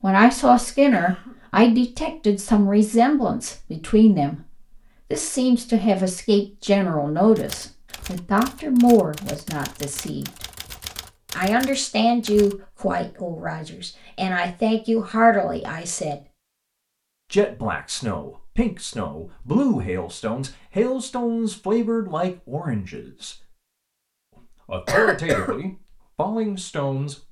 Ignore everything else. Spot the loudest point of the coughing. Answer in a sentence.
The volume of the coughing peaks at 25 seconds.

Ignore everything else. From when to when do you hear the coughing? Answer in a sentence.
You can hear the coughing from 0.9 to 1.4 s and from 24.9 to 25.6 s.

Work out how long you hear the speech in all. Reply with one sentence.
You can hear the speech for 23 seconds altogether.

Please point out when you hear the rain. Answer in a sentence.
You can't hear the rain here.